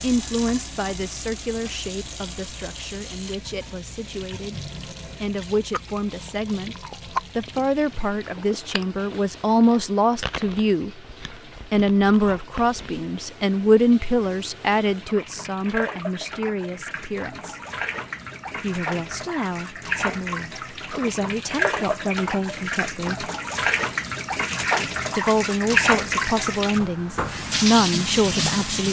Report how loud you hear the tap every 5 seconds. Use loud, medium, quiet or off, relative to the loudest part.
quiet, quiet, quiet, medium, loud, loud.